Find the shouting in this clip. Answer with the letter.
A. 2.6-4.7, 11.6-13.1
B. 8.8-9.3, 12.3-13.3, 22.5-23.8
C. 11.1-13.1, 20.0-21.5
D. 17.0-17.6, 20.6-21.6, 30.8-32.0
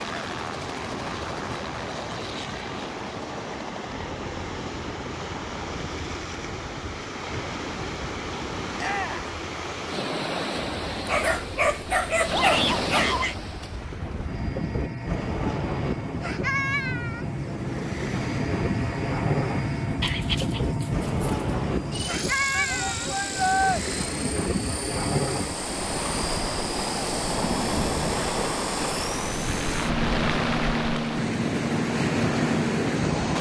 B.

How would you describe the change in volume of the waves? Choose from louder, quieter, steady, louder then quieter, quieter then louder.
louder.